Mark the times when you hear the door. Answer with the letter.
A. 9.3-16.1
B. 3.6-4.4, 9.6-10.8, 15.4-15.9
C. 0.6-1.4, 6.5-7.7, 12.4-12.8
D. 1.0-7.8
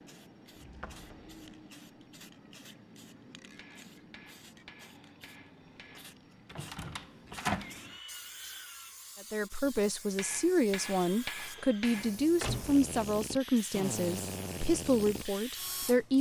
C.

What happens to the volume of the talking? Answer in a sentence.
The loudness of the talking stays about the same.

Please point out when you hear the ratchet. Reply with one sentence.
The ratchet can't be heard in this clip.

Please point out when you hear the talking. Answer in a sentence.
You can hear the talking from 9.3 to 16.1 s.